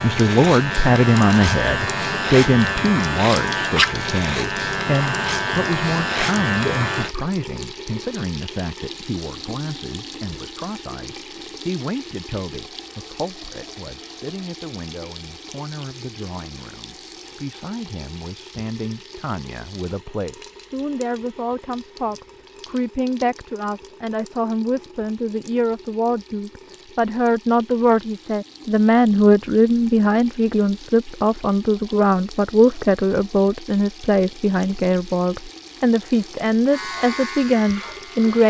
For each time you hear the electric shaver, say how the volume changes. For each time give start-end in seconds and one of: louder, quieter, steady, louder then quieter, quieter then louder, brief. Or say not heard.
0.0-7.1 steady
36.7-38.4 brief.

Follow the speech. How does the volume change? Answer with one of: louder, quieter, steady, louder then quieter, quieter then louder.
quieter then louder.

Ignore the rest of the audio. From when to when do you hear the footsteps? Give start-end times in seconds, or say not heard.
not heard.